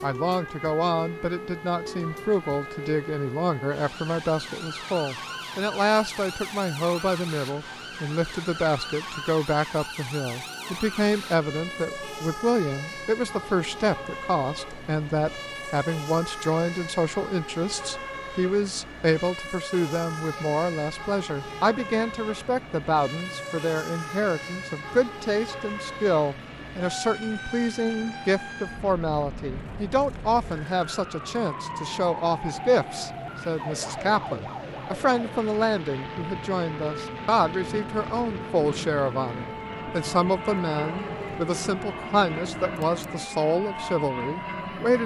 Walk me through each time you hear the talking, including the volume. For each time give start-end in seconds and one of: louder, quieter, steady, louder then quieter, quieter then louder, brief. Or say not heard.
0.0-45.0 steady.